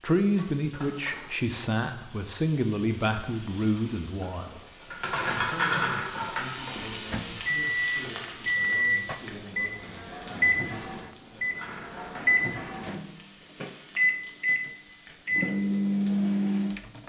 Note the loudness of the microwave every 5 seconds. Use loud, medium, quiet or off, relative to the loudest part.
off, loud, loud, loud.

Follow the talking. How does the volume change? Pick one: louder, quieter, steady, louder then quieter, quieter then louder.
quieter.